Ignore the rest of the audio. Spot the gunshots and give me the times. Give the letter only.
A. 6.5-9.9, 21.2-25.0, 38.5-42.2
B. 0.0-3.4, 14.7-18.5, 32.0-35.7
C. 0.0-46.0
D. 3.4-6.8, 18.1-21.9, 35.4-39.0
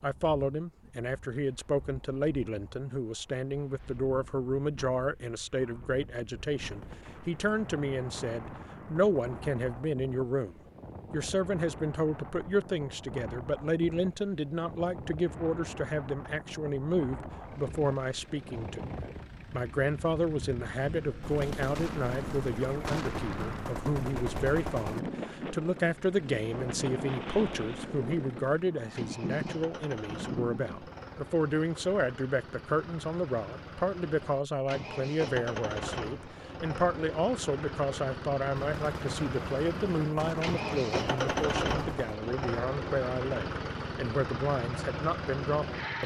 A.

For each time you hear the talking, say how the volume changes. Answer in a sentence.
The talking can be heard from 0.0 to 46.0 s, at a steady volume.